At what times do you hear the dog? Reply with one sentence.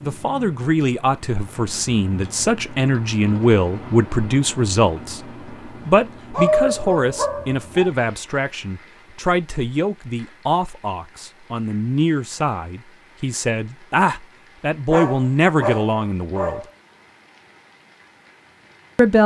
The dog can be heard from 6.3 to 7.9 s and from 14.8 to 16.6 s.